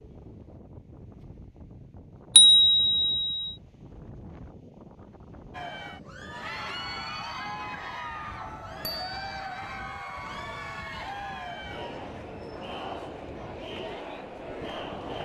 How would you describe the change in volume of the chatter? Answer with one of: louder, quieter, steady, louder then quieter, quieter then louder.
steady.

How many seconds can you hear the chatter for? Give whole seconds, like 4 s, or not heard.
10 s.